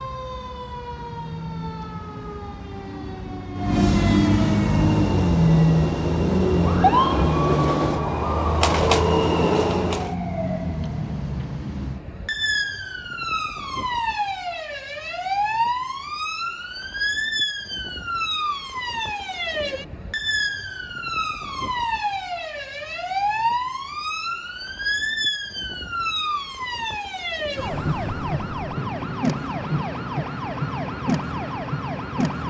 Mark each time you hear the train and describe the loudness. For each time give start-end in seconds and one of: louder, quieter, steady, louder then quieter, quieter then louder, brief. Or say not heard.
4.6-10.2 louder.